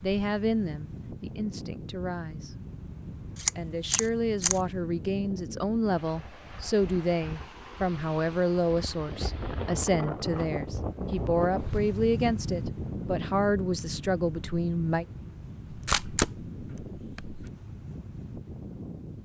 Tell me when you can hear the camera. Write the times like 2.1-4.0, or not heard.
3.4-4.6, 15.7-17.4.